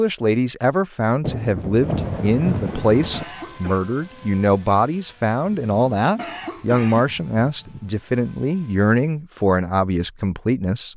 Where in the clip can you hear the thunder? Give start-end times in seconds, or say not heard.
1.2-3.2.